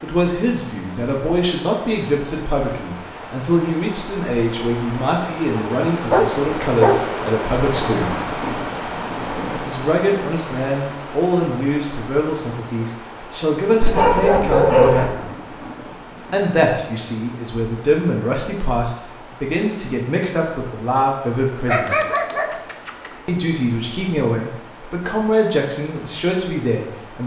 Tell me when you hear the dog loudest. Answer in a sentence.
The volume of the dog peaks at 15 seconds.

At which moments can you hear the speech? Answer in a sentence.
You can hear the speech from 0.0 to 8.1 s, from 9.7 to 15.2 s, from 16.3 to 22.0 s and from 23.2 to 27.2 s.